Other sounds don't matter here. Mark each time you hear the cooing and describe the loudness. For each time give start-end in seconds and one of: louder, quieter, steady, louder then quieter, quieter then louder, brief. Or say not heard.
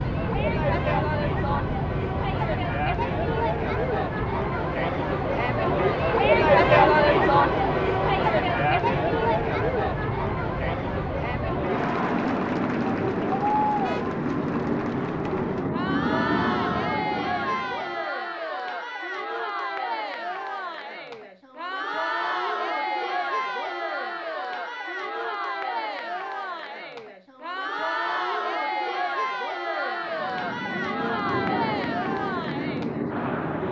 not heard.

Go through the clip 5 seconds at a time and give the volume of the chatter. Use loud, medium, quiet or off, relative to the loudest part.
medium, loud, medium, medium, medium, medium, medium.